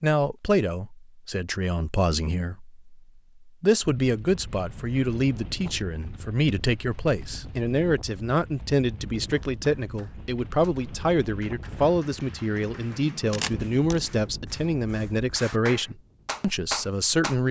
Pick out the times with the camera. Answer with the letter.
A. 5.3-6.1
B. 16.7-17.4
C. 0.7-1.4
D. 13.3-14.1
D.